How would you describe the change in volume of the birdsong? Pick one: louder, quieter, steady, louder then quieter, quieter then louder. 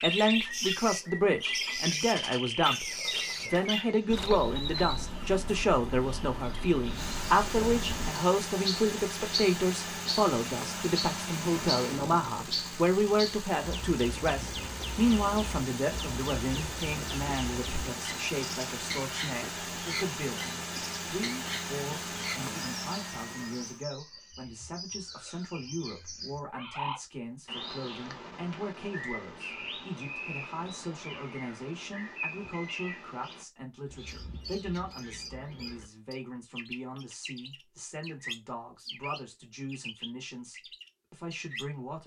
quieter.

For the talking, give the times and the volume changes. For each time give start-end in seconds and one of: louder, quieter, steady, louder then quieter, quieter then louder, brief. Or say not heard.
0.0-42.0 quieter.